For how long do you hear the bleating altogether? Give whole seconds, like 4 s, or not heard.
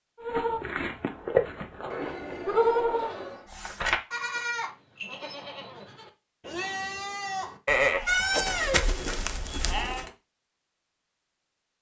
10 s.